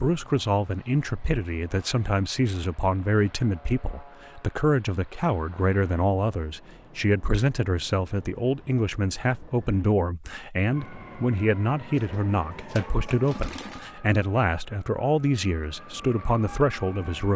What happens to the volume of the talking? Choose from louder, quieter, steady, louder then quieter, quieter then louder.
steady.